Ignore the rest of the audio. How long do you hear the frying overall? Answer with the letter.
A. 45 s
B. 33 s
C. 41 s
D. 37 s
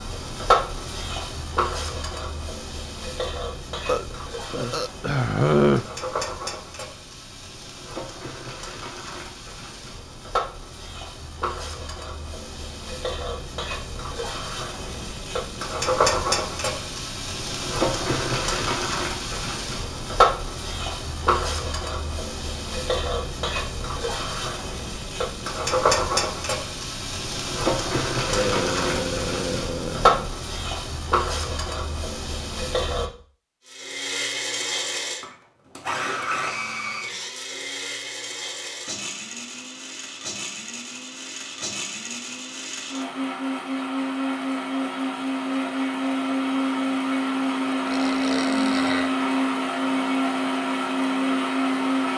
B.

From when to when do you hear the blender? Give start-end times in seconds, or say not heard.
33.6-52.1.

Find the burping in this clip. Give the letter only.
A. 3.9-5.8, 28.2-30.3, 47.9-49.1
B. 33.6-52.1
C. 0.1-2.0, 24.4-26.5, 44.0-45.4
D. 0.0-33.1
A.